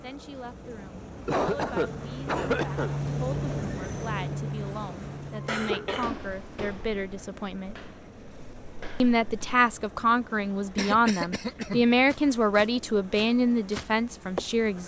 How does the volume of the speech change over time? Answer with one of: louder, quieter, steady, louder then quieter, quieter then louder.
louder.